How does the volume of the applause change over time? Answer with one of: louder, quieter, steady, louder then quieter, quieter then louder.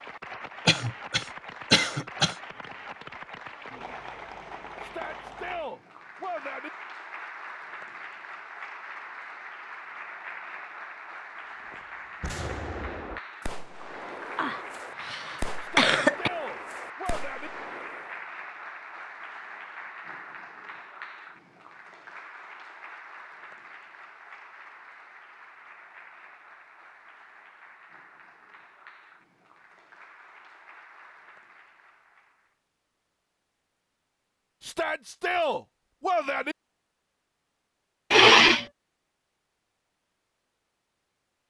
quieter.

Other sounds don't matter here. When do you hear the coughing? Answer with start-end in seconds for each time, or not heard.
0.7-2.4, 14.3-16.3, 38.1-38.6.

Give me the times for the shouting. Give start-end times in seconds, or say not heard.
4.8-6.7, 15.6-17.5, 34.6-36.5.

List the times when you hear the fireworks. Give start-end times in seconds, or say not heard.
11.7-18.2.